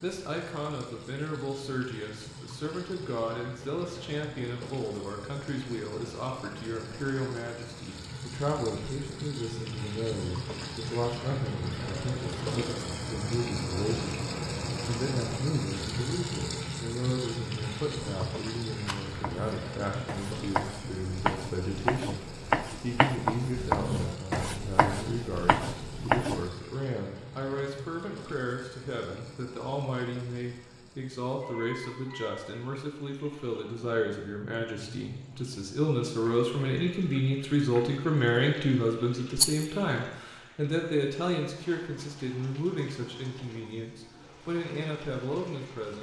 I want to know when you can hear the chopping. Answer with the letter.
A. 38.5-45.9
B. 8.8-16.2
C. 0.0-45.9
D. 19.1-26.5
D.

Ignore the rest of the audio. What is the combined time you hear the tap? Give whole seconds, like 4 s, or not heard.
46 s.